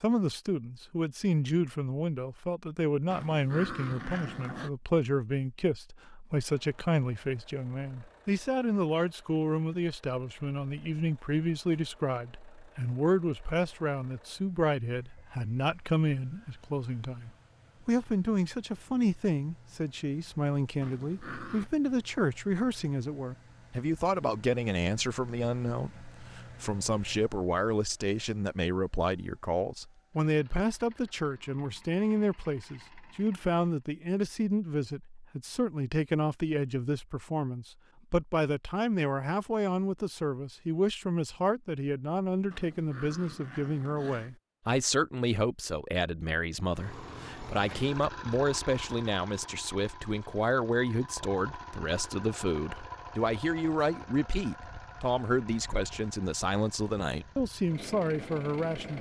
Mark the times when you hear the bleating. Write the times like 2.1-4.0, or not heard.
not heard.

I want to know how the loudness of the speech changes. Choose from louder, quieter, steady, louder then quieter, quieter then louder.
steady.